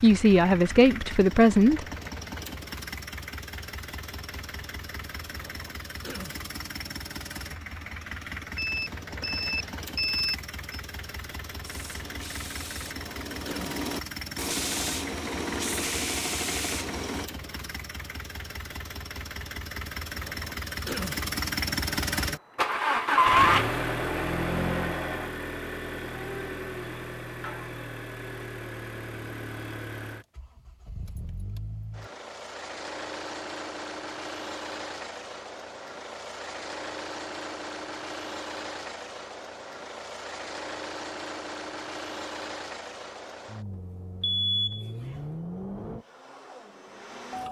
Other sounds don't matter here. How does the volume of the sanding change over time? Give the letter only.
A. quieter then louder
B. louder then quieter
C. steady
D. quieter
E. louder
E.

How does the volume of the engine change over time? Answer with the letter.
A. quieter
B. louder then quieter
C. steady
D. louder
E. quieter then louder
B.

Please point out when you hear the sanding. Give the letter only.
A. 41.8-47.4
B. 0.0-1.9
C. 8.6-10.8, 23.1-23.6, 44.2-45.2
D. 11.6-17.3
D.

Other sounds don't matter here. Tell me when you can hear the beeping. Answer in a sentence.
You can hear the beeping from 8.6 to 10.8 s, from 23.1 to 23.6 s and from 44.2 to 45.2 s.